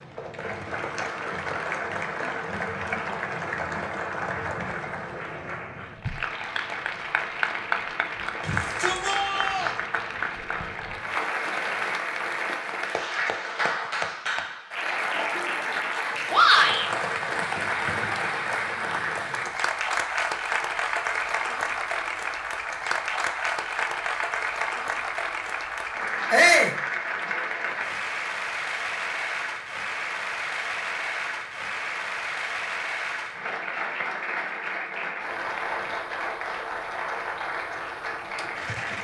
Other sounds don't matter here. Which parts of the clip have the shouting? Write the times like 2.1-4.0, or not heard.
8.4-9.8, 16.3-16.9, 26.3-26.8.